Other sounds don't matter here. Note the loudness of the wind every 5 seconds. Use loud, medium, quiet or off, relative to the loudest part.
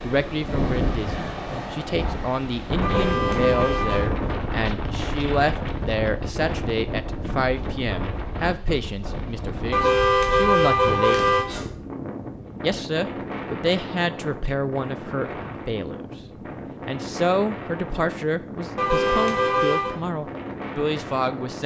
loud, loud, medium, medium, medium.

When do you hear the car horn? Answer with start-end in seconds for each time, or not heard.
2.8-4.2, 9.7-11.7, 18.8-19.9.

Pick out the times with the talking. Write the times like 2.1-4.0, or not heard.
0.0-11.3, 12.6-16.1, 16.8-21.6.